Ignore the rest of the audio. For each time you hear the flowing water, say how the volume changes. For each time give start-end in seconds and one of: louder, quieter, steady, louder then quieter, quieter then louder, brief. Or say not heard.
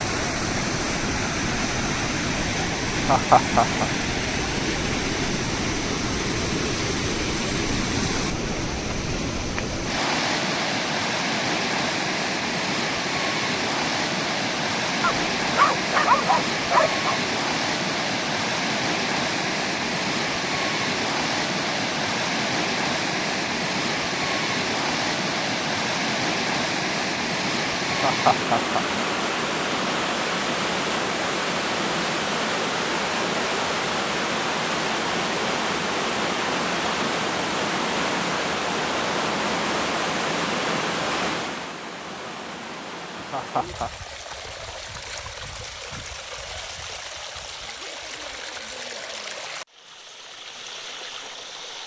0.0-51.8 quieter.